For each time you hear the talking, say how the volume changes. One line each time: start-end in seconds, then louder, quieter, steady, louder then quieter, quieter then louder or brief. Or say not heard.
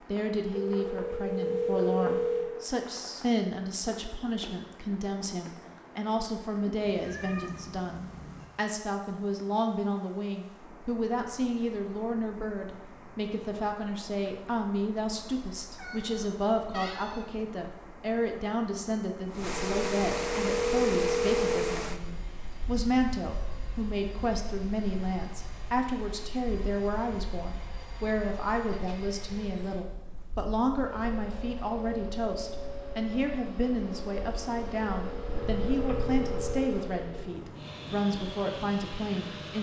0.1-39.5 steady.